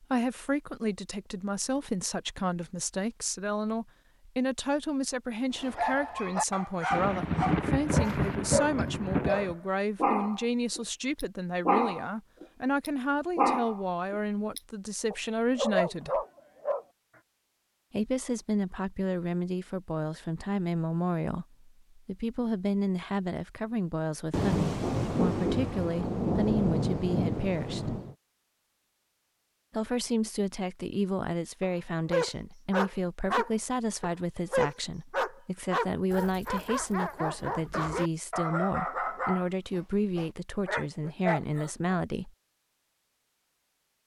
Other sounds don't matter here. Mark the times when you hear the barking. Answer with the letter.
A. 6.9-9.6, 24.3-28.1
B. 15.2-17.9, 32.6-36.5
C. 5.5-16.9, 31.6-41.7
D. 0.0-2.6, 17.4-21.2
C.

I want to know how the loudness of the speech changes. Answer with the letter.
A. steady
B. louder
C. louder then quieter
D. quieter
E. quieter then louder
A.